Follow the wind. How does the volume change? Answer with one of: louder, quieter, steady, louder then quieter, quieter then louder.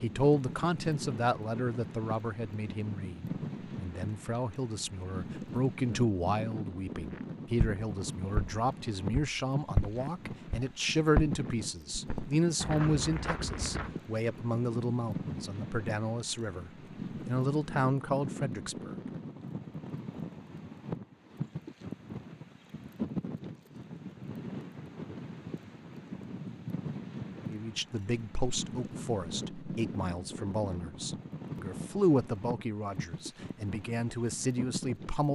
steady.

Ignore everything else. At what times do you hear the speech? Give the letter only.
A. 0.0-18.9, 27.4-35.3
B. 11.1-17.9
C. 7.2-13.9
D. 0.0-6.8
A.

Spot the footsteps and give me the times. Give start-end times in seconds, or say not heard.
7.2-13.9.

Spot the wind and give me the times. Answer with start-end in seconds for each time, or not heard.
0.0-35.3.